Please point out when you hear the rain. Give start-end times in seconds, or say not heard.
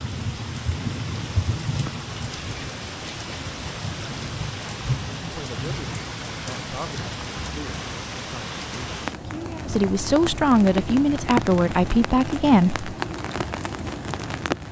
0.0-14.6.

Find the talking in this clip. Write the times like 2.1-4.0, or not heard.
5.2-12.8.